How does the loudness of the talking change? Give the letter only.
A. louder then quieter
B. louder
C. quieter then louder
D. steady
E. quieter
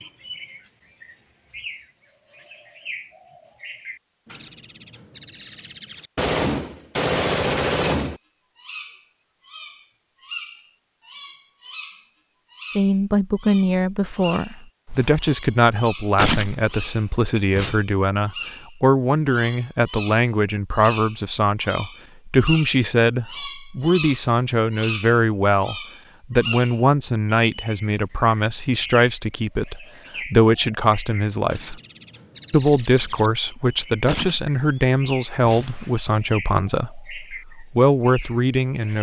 D.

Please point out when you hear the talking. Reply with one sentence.
You can hear the talking from 12.8 to 31.8 s and from 32.5 to 38.9 s.